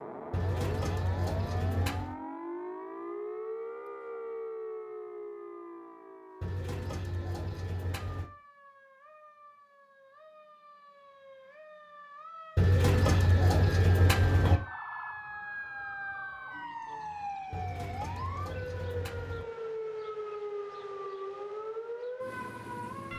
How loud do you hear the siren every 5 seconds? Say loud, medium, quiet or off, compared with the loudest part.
loud, medium, medium, loud, loud.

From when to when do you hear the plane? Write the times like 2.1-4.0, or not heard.
not heard.